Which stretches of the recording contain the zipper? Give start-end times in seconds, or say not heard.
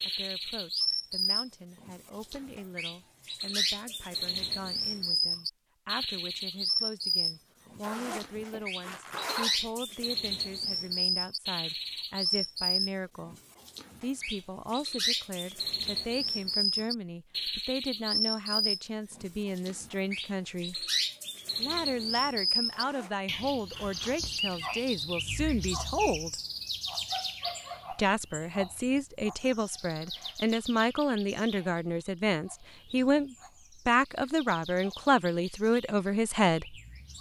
7.8-9.6, 22.7-24.2.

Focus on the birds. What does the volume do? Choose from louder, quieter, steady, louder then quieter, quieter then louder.
quieter.